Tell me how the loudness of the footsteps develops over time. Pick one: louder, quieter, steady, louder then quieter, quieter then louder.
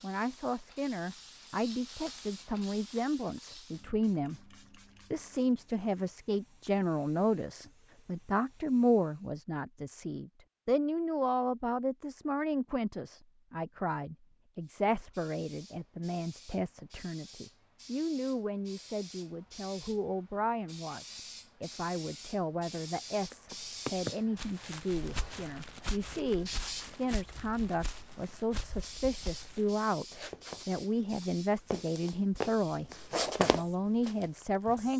quieter then louder.